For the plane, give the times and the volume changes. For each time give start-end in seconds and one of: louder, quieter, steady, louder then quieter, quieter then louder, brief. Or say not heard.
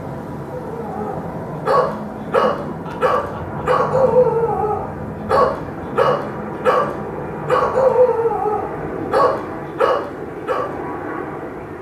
0.0-11.7 steady.